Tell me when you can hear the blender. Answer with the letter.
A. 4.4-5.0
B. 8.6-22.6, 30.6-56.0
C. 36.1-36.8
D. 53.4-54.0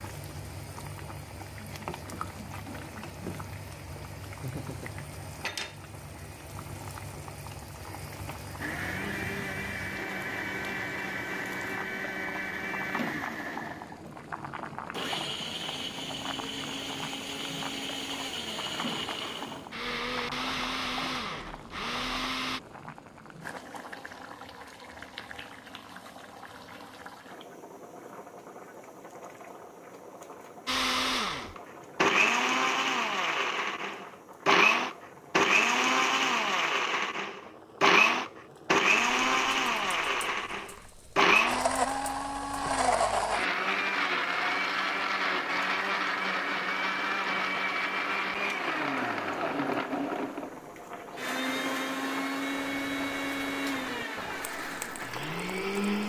B.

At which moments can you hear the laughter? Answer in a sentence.
The laughter can be heard from 4.4 to 5.0 s.